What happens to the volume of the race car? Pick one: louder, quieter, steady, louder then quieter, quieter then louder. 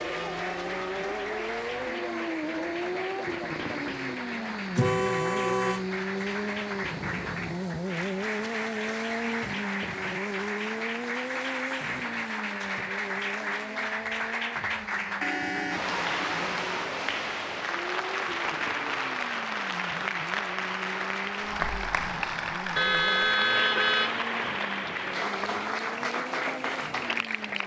quieter.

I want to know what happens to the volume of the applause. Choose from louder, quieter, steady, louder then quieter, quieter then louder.
louder.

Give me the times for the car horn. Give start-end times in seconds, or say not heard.
4.8-6.2, 15.2-16.4, 22.8-24.2.